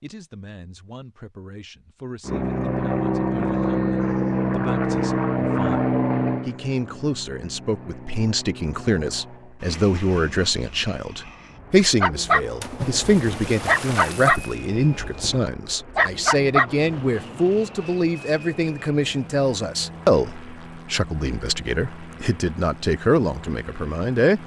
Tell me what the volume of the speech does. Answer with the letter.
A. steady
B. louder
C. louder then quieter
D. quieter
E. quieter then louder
B.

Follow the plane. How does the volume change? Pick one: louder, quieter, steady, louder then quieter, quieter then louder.
quieter.